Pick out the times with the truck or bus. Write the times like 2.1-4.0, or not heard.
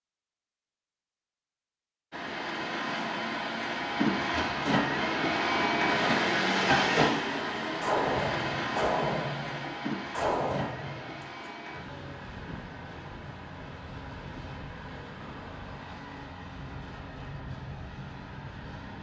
2.1-18.9.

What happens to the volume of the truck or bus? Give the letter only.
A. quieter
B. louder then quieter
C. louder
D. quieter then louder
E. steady
A.